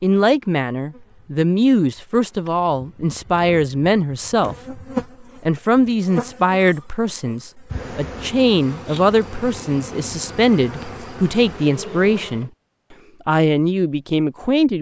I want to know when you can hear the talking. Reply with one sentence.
The talking can be heard from 0.0 to 4.8 s, from 5.4 to 12.5 s and from 13.2 to 14.7 s.